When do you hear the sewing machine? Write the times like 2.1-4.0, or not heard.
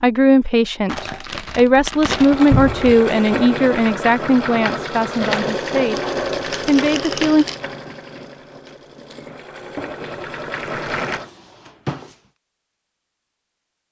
2.1-11.3.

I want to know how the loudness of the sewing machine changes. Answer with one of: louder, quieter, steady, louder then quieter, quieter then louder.
quieter then louder.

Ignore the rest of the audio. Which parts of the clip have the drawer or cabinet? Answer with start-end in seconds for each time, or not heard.
2.5-3.0, 11.1-12.2.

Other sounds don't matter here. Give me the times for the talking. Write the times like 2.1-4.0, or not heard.
0.0-7.5.